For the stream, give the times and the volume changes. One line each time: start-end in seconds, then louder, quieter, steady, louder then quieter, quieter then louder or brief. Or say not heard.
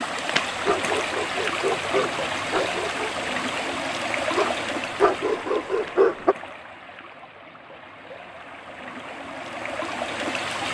0.0-10.7 quieter then louder.